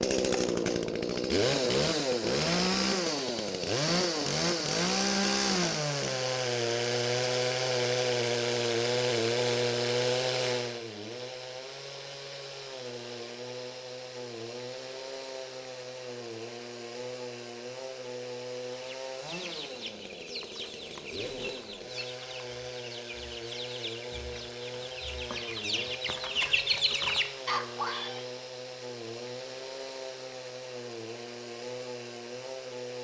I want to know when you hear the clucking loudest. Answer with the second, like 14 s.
27 s.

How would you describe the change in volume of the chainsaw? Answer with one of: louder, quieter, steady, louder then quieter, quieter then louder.
quieter.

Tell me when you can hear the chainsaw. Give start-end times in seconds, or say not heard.
0.0-32.9.